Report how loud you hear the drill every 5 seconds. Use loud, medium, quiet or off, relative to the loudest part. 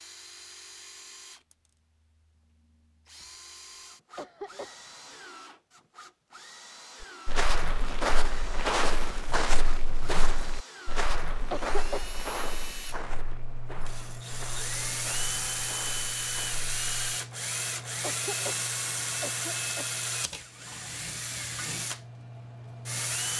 quiet, quiet, medium, loud, loud.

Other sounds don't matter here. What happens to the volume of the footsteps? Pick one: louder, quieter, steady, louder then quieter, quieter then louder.
quieter.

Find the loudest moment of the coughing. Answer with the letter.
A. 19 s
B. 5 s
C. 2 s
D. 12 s
D.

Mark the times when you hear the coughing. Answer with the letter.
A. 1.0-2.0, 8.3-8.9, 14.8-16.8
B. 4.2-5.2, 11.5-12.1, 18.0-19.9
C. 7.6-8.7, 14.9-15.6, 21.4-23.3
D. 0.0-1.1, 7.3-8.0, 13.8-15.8
B.